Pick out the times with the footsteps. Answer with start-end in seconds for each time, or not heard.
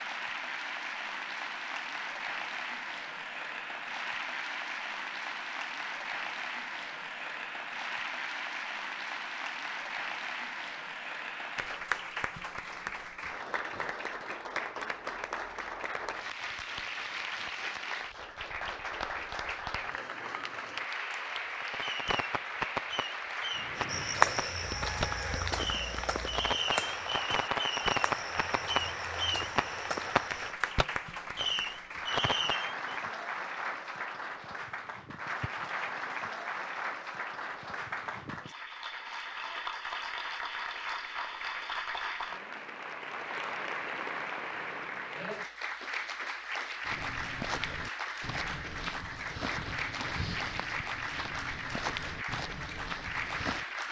23.8-30.6, 46.9-53.6.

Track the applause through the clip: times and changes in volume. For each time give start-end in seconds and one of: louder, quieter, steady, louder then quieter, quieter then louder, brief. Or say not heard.
0.0-53.8 steady.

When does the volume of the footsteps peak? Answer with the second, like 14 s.
24 s.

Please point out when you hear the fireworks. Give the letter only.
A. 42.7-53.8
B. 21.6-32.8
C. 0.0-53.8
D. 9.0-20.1
B.